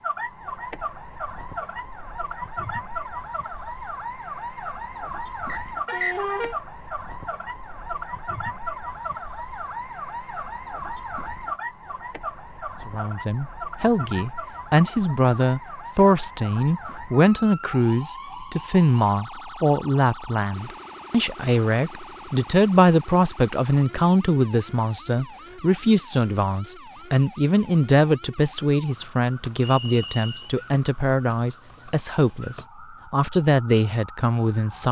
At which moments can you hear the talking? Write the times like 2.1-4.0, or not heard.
12.8-34.8.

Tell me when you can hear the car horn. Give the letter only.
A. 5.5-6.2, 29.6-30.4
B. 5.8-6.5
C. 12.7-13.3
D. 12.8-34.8
B.